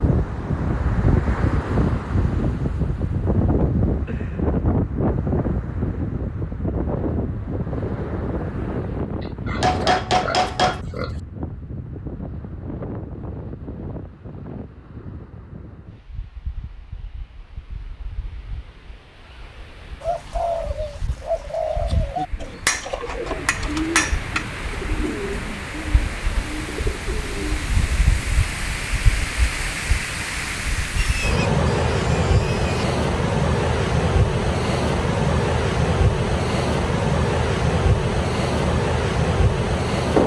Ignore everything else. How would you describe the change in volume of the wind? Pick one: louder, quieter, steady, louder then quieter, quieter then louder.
quieter then louder.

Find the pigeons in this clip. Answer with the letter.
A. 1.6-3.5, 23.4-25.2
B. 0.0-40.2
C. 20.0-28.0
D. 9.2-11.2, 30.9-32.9
C.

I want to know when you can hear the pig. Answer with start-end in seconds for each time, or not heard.
9.2-11.2, 30.9-32.9.